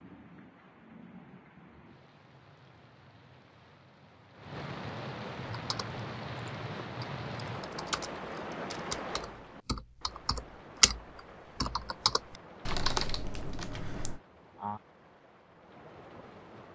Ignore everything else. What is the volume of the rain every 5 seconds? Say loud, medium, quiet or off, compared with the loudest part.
medium, loud, medium, quiet.